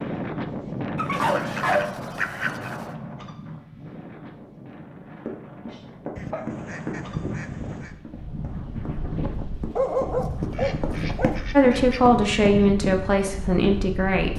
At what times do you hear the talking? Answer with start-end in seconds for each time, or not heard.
11.5-14.3.